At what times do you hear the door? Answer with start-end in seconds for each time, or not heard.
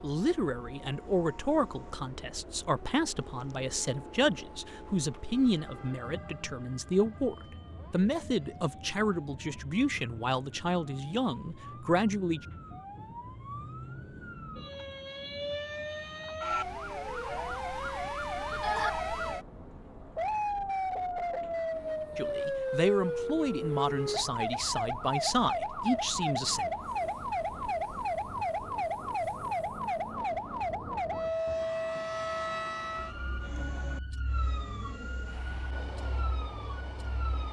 not heard.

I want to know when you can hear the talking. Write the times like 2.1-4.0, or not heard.
0.0-12.4, 22.1-26.7.